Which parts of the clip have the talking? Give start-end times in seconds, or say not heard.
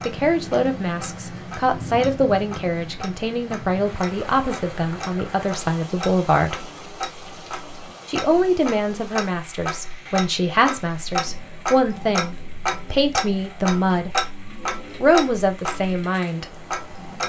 0.1-6.7, 8.1-14.1, 15.0-16.5.